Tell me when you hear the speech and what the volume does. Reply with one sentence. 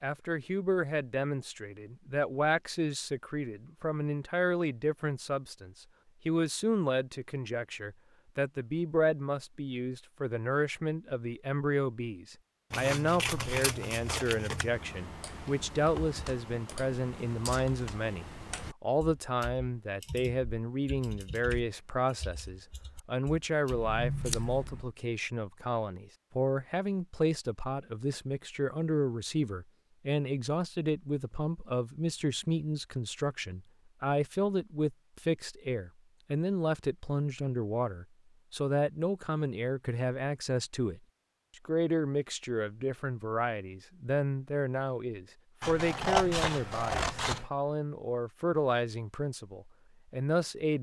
You can hear the speech from 0.0 to 50.7 s, at a steady volume.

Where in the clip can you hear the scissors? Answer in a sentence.
You can hear the scissors from 12.7 to 14.8 s, from 23.7 to 24.9 s and from 45.6 to 47.5 s.